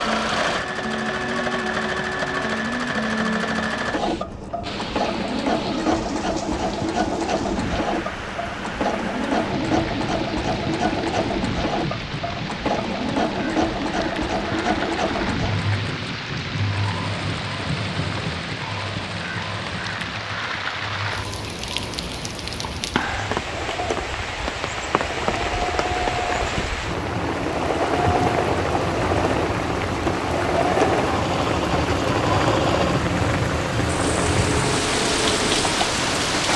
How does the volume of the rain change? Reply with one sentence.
The loudness of the rain goes up.